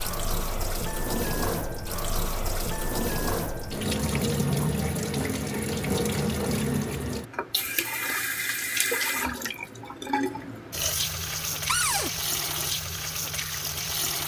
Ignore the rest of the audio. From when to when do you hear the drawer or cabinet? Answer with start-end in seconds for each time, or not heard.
11.7-12.1.